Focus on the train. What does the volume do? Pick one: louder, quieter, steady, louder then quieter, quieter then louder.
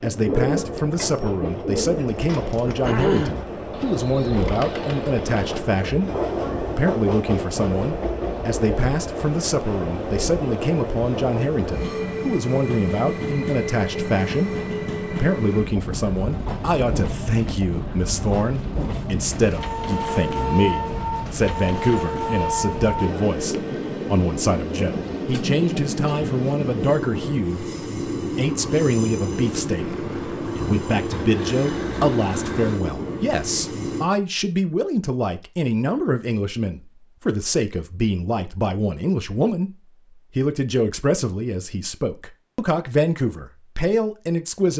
steady.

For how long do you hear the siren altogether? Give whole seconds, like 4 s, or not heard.
not heard.